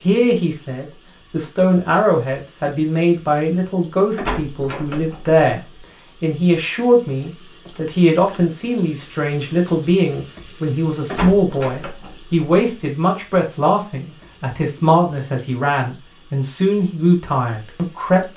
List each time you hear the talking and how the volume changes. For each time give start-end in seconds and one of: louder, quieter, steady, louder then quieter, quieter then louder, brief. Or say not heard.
0.0-18.3 steady.